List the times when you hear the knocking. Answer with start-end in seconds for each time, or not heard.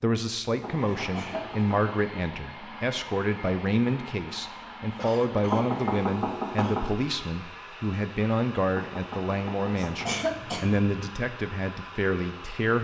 0.6-1.8, 5.5-6.8, 8.8-10.1.